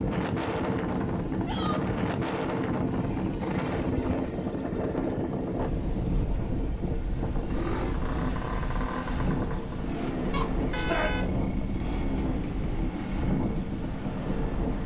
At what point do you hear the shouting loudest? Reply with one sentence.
The volume of the shouting peaks at 11 seconds.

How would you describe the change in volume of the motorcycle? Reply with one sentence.
The loudness of the motorcycle stays about the same.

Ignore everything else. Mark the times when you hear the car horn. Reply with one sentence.
You can hear the car horn from 10.3 to 11.3 s.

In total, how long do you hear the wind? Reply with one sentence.
The wind can be heard for 15 seconds in total.